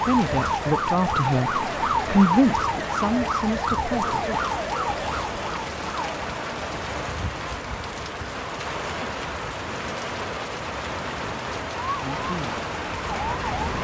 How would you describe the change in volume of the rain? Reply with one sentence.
The loudness of the rain stays about the same.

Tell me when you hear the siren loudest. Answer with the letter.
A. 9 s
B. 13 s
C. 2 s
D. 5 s
C.